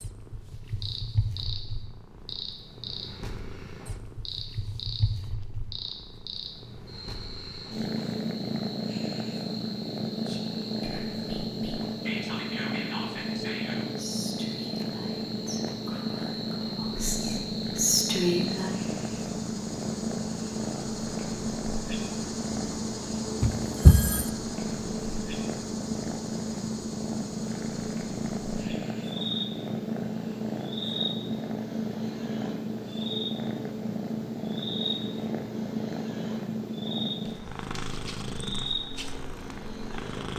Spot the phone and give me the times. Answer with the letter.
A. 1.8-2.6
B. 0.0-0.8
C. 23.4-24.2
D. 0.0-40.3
C.